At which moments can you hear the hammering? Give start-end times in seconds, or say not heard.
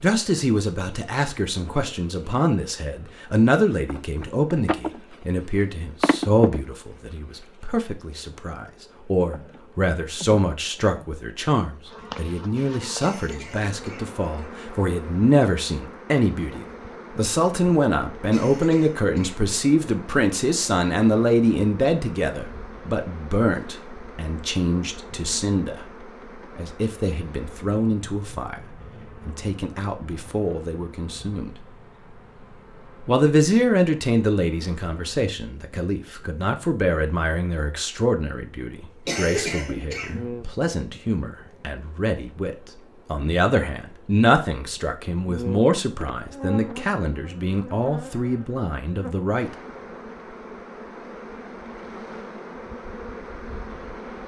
not heard.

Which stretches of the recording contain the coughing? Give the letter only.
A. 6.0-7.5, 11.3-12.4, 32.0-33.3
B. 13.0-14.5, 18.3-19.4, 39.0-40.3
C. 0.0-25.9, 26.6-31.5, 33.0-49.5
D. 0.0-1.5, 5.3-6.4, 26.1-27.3
B.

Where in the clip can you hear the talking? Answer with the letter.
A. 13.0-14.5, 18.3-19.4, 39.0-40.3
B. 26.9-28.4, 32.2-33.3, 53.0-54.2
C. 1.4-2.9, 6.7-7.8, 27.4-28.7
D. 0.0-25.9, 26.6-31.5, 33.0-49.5
D.